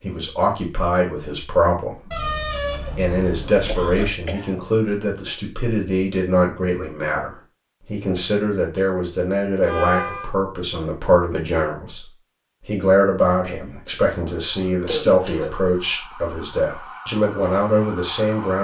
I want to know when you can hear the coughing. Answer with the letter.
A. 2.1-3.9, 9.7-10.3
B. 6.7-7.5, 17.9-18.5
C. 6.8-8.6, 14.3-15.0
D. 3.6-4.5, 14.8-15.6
D.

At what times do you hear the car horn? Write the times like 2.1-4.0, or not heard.
2.1-3.9, 9.7-10.3.